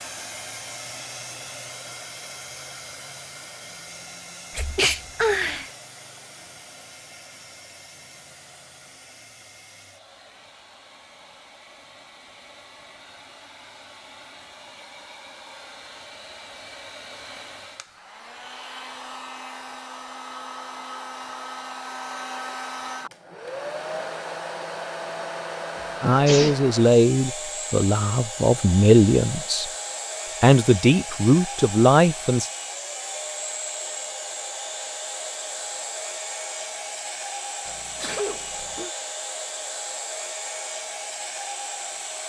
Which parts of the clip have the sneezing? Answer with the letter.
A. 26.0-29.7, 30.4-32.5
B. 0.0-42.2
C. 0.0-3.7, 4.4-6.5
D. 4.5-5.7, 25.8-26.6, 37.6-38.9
D.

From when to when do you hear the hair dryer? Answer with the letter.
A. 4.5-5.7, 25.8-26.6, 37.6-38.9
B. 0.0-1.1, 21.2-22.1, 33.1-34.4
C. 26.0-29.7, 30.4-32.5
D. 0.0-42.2
D.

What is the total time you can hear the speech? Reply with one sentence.
You can hear the speech for 6 seconds altogether.